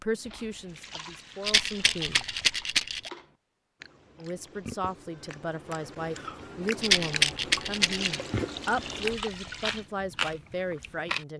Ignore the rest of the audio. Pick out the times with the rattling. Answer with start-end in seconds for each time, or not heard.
1.4-3.1, 6.8-8.2.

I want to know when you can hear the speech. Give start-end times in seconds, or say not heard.
0.0-2.2, 4.2-11.3.